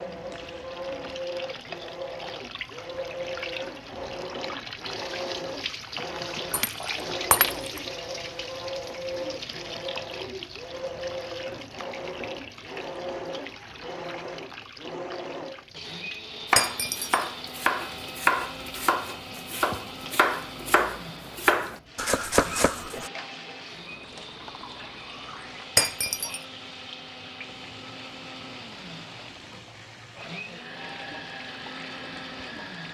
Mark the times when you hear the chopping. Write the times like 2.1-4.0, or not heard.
16.5-23.1.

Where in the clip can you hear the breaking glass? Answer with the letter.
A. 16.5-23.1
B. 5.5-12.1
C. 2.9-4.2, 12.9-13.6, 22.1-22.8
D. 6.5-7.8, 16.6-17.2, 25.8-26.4
D.